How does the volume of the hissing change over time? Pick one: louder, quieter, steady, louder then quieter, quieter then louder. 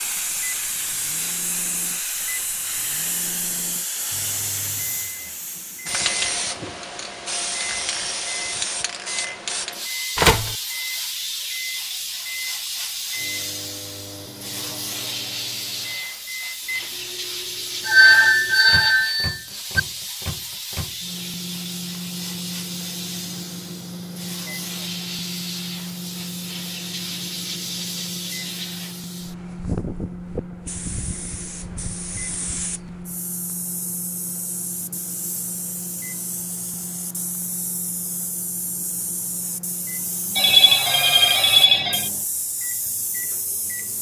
quieter.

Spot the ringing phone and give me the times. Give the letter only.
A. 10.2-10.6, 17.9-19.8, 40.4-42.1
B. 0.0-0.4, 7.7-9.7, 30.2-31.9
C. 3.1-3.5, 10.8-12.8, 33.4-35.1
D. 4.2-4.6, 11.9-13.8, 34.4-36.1
A.